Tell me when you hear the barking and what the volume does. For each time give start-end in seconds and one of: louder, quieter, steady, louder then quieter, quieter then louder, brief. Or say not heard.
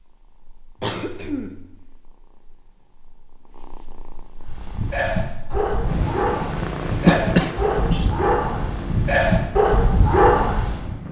4.5-10.9 louder.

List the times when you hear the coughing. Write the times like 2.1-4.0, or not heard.
0.8-1.6, 7.0-8.1.